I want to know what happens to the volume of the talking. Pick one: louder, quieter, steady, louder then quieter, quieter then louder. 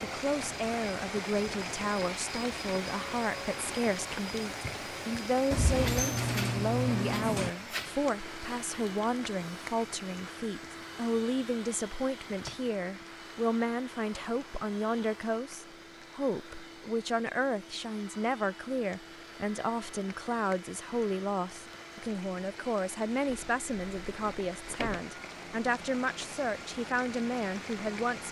steady.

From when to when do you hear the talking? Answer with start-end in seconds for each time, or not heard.
0.0-28.2.